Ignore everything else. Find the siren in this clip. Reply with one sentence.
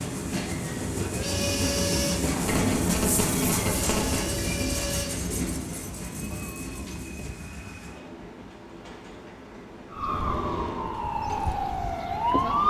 The siren can be heard from 9.9 to 12.6 s.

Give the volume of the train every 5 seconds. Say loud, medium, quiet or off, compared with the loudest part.
loud, medium, medium.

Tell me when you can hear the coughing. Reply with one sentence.
You can't hear the coughing here.